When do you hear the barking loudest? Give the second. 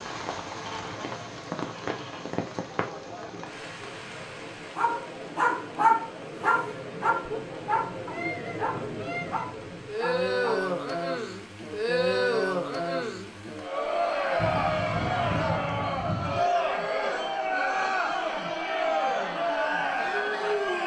6 s.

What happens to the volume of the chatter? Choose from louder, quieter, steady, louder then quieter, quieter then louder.
louder.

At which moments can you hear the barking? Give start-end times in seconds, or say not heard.
4.8-10.7.